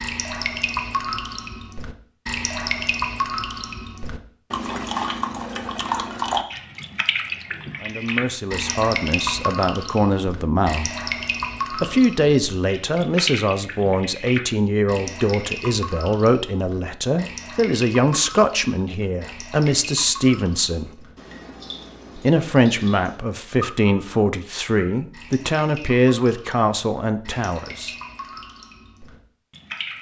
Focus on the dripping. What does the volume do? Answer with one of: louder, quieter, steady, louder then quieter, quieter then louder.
quieter.